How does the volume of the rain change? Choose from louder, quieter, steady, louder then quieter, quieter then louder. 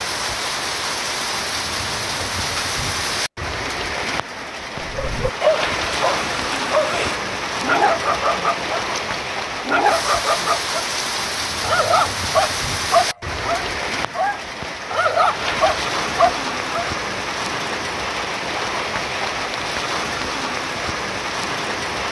steady.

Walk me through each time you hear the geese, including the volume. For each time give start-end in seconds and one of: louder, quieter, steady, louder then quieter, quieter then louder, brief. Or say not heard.
not heard.